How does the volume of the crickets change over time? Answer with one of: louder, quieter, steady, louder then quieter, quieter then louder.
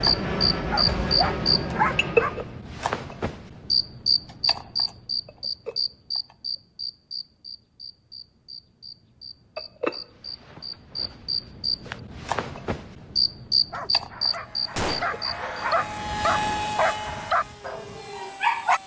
quieter then louder.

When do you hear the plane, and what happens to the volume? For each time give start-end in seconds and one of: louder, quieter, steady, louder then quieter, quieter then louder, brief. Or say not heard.
0.0-2.6 brief
14.3-18.8 louder then quieter.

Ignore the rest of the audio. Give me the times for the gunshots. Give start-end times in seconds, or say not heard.
14.8-15.2.